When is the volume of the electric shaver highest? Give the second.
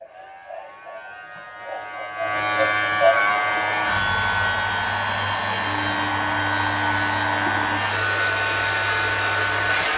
3 s.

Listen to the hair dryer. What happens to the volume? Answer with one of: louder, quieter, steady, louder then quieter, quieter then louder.
steady.